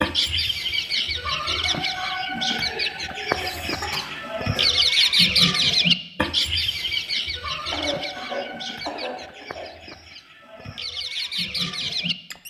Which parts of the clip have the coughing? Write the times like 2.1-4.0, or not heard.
3.2-4.7, 7.7-9.7.